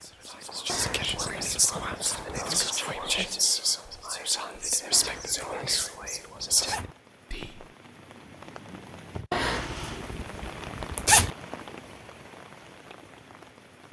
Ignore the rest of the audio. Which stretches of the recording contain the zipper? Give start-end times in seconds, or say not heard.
0.7-2.4, 4.9-7.0, 9.3-11.3.